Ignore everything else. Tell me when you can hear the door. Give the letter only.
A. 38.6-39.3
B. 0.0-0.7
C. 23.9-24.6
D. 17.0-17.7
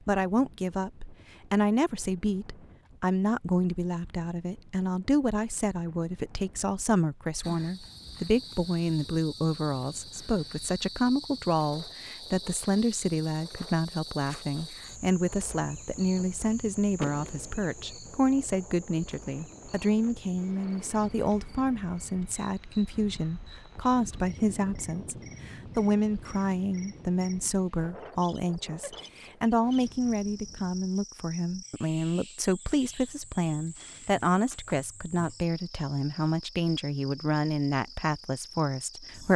D.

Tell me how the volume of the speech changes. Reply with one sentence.
The volume of the speech stays about the same.